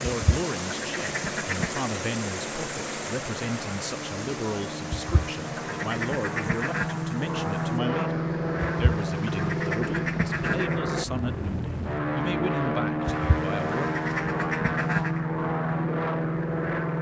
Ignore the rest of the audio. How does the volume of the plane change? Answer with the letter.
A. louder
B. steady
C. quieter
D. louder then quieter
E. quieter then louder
A.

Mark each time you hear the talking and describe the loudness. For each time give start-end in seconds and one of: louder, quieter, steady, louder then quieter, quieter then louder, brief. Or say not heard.
0.0-13.9 steady.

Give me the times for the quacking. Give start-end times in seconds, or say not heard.
0.1-1.8, 4.9-7.0, 8.6-10.8, 13.1-15.2.